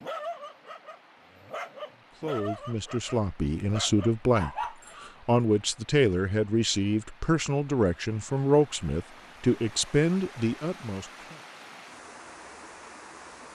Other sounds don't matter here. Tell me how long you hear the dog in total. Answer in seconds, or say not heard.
5 s.